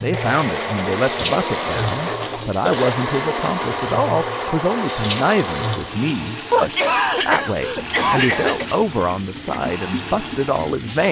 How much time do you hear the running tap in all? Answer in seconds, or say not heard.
11 s.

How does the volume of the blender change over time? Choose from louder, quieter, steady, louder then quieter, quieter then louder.
quieter.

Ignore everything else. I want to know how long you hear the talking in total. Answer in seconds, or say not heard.
11 s.